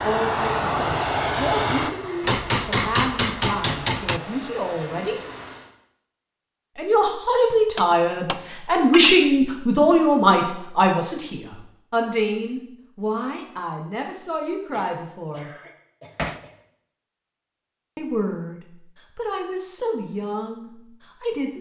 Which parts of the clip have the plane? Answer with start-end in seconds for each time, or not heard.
0.0-5.7.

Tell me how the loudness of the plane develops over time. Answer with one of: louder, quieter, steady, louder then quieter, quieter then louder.
quieter.